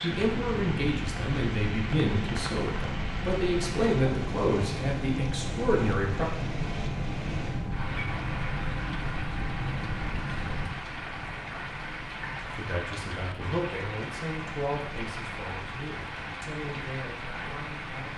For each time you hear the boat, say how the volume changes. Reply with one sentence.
You can hear the boat from 0.1 to 18.1 s, getting quieter.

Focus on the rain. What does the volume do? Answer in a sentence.
The loudness of the rain stays about the same.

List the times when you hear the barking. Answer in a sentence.
You can't hear the barking here.